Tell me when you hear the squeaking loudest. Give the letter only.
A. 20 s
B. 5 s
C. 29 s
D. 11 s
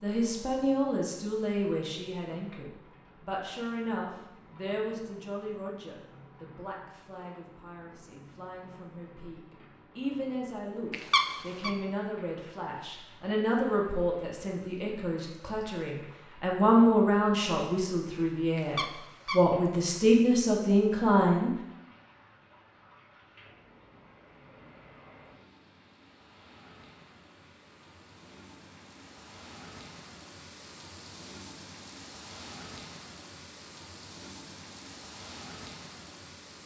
D.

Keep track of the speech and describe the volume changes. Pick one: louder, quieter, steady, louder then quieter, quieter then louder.
quieter then louder.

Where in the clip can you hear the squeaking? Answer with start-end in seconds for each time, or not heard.
10.9-11.7, 18.6-19.4.